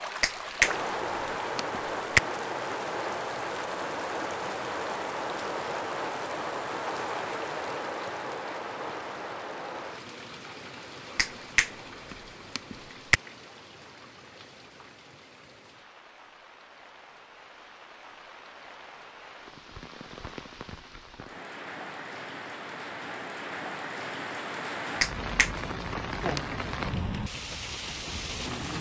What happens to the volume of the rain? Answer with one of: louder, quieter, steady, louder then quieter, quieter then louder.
quieter then louder.